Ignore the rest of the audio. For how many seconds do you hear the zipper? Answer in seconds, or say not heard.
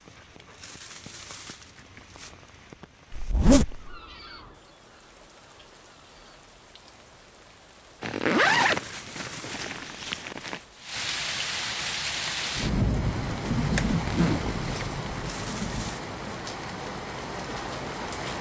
5 s.